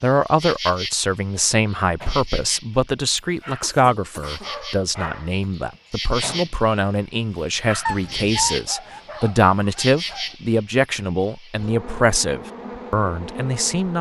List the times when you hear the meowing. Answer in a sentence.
The meowing can be heard from 7.8 to 8.6 s.